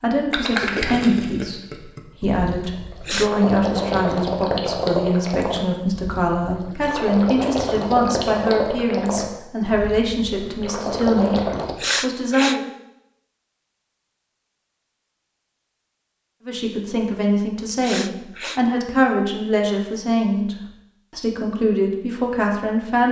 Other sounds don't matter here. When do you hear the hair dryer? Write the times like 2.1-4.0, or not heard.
not heard.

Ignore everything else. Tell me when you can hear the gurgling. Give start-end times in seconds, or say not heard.
0.3-11.8.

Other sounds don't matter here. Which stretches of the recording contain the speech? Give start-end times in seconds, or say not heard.
0.0-12.7, 16.4-20.6, 21.1-23.0.